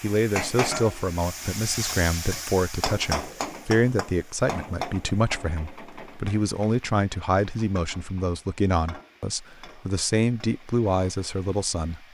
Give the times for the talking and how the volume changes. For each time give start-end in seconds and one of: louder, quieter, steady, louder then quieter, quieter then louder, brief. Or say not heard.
0.0-12.0 steady.